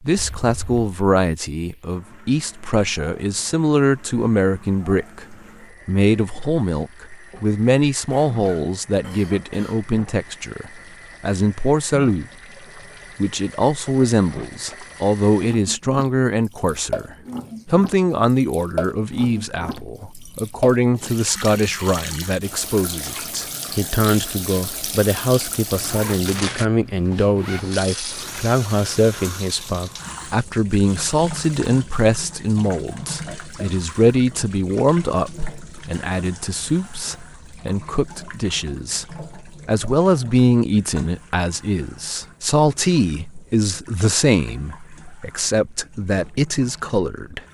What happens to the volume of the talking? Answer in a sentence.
The loudness of the talking stays about the same.